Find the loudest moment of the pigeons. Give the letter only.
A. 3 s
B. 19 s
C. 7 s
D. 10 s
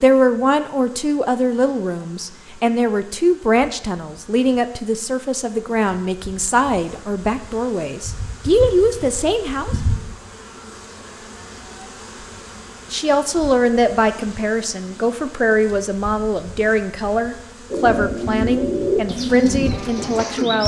B.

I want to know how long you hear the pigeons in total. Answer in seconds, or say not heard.
3 s.